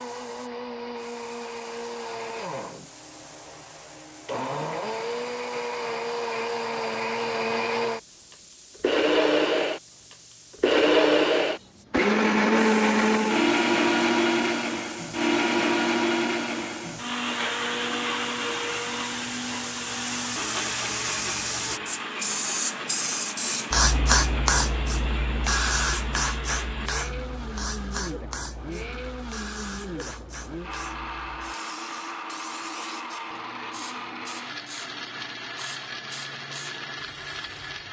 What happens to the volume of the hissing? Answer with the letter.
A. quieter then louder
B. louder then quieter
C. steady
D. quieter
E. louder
B.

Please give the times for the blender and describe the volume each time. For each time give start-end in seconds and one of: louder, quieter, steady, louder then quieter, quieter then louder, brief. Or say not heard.
0.0-37.8 louder then quieter.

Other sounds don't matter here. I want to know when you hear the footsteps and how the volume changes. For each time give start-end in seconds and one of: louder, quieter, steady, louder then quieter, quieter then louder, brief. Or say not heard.
not heard.